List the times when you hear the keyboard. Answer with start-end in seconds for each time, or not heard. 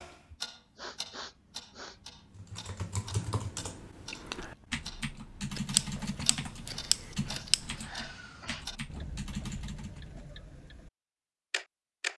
2.4-10.1.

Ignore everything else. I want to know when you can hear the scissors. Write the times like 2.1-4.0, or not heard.
5.5-7.8.